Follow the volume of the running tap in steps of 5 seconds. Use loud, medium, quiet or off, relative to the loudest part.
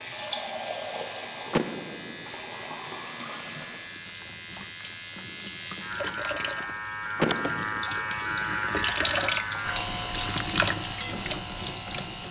medium, loud, loud.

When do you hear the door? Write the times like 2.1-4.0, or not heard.
1.5-2.3, 7.2-7.8.